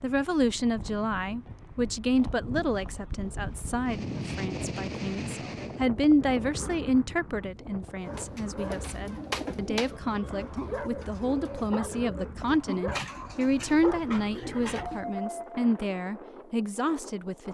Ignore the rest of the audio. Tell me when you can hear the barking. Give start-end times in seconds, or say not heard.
8.0-15.7.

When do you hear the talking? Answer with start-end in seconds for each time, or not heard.
0.0-17.4.